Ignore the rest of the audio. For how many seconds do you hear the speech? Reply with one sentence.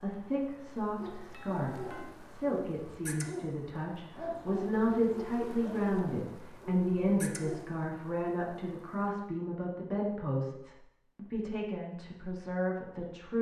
The speech can be heard for 13 seconds in total.